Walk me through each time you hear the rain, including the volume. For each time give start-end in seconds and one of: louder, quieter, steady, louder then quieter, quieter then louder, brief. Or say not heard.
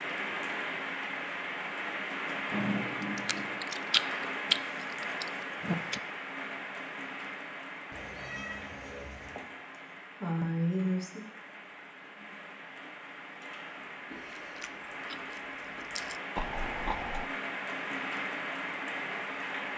0.0-19.7 quieter then louder.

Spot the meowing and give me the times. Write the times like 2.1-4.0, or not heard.
7.9-9.4.